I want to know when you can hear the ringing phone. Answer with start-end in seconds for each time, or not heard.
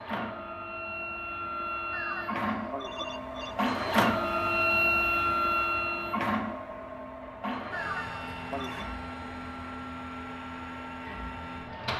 1.9-3.5, 7.7-8.9.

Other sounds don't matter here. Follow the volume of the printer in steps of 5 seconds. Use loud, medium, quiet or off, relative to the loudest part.
loud, loud, medium.